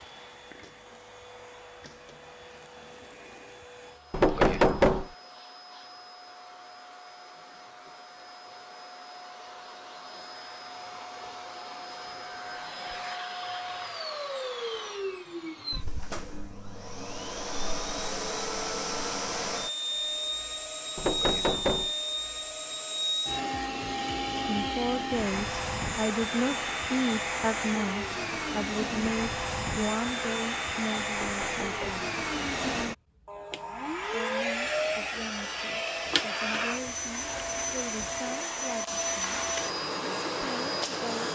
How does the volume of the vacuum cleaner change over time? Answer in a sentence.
The loudness of the vacuum cleaner goes up.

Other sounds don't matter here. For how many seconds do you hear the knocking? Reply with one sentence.
You can hear the knocking for 3 seconds altogether.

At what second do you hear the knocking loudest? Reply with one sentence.
The volume of the knocking peaks at 5 seconds.